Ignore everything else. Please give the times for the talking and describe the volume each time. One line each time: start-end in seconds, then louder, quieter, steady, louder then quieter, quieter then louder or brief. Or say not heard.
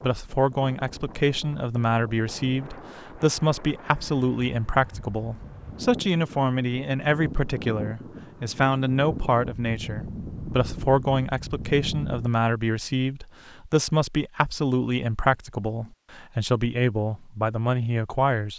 0.0-18.5 steady.